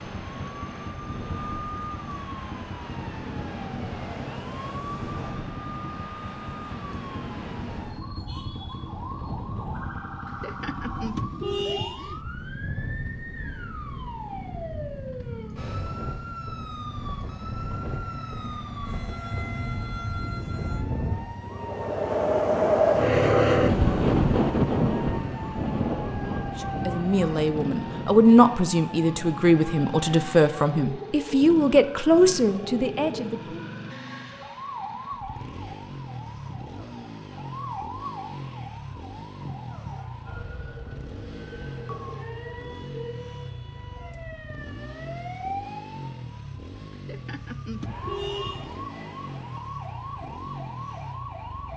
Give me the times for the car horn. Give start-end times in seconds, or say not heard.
10.2-12.2, 46.9-48.9.